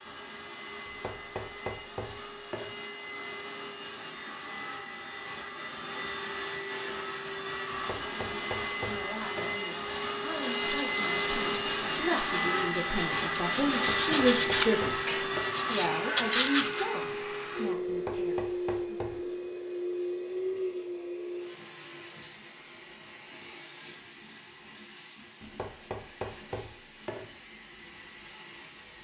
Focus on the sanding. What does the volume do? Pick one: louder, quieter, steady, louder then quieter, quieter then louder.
quieter then louder.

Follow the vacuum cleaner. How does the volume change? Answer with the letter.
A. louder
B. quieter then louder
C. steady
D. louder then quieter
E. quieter
D.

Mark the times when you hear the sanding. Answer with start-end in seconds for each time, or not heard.
10.2-16.9.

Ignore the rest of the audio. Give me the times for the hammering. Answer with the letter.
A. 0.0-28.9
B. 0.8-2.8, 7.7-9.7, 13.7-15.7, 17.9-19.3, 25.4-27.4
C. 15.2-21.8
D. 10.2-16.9
B.